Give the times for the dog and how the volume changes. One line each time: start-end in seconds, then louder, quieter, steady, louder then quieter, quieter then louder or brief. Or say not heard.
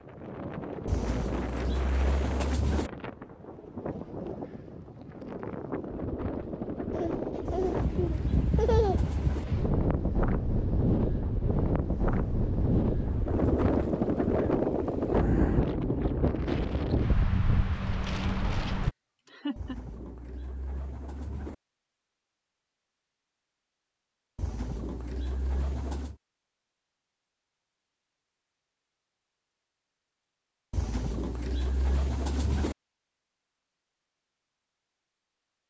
not heard.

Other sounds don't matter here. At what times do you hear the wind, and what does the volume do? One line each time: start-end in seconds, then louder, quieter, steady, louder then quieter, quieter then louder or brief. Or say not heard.
0.0-18.9 louder.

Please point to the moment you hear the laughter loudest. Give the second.
9 s.